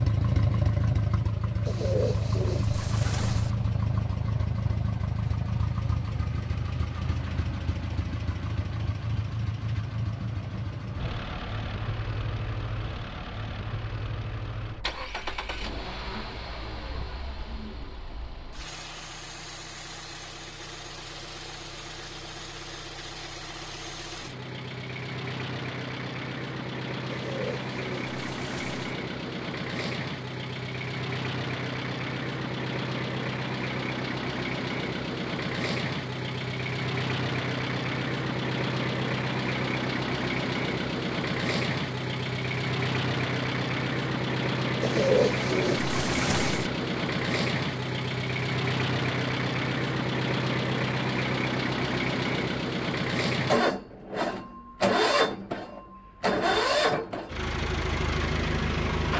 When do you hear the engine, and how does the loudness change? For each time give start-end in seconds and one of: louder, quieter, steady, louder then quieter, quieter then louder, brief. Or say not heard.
0.0-59.1 quieter then louder.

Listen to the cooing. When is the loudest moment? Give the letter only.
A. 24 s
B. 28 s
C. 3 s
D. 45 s
D.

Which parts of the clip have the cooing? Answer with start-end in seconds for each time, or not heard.
1.6-3.5, 27.1-28.9, 44.8-46.7.